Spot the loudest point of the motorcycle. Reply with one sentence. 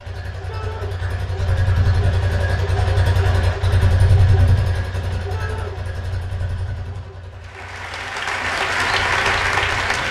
The loudest moment of the motorcycle is at 4 seconds.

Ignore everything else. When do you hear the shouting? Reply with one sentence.
You can hear the shouting from 0.5 to 0.9 s and from 5.3 to 5.8 s.